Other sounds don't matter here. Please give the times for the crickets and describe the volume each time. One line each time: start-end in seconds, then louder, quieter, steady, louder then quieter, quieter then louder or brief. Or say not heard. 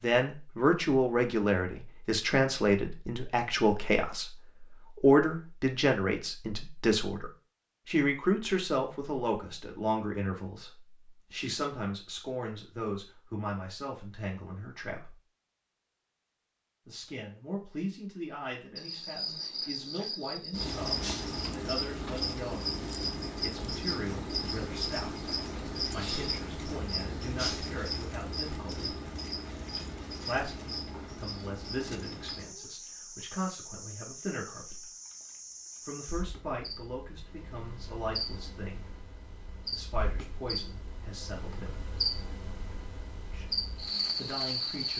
18.8-44.9 quieter then louder.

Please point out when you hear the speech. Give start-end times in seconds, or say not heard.
0.0-15.2, 16.9-22.7, 23.4-29.0, 30.2-34.9, 35.9-41.8, 43.3-44.9.